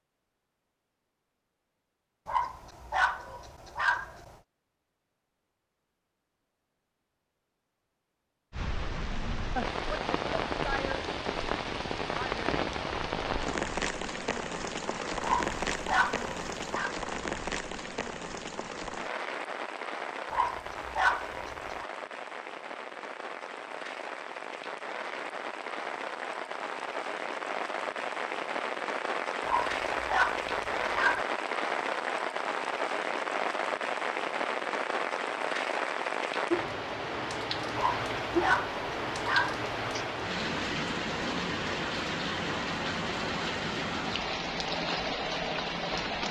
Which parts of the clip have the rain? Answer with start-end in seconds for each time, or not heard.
8.5-46.2.